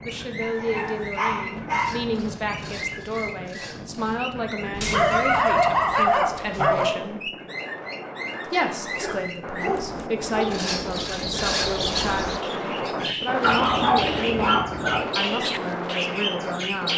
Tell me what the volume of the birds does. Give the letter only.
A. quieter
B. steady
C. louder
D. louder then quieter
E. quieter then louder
C.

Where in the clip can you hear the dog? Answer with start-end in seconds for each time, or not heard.
0.4-1.9, 4.7-7.0, 8.6-10.7, 13.4-15.1.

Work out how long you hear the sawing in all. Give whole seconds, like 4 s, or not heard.
4 s.